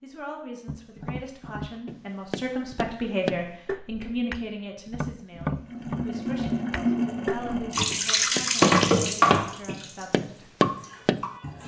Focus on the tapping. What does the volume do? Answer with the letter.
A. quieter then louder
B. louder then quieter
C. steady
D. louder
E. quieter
D.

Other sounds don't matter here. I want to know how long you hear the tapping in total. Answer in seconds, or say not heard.
11 s.